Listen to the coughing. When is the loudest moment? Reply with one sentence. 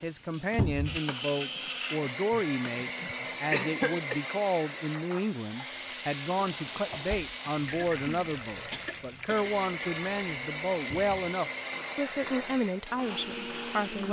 The loudest moment of the coughing is at 4 seconds.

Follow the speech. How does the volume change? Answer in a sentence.
The loudness of the speech stays about the same.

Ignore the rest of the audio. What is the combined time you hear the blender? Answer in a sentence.
You can hear the blender for 14 seconds altogether.